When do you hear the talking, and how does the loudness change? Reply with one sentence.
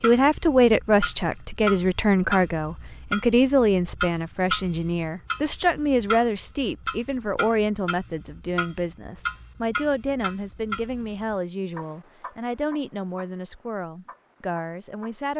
You can hear the talking from 0.0 to 15.3 s, getting quieter.